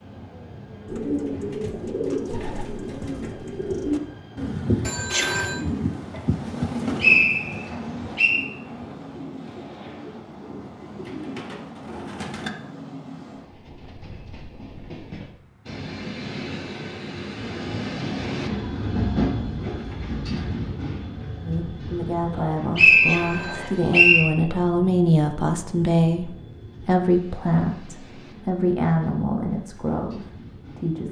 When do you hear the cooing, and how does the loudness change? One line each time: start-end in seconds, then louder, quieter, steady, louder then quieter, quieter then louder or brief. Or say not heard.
0.8-12.5 quieter.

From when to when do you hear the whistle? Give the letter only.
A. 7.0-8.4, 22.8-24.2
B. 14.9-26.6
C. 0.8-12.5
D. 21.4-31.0
A.